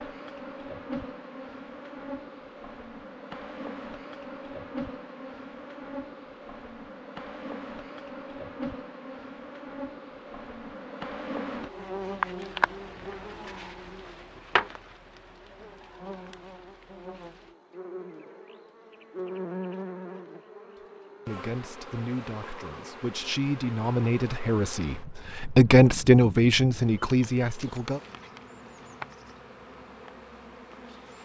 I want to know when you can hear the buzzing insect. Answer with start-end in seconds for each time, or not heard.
0.0-31.2.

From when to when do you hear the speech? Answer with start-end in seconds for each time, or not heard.
21.2-28.0.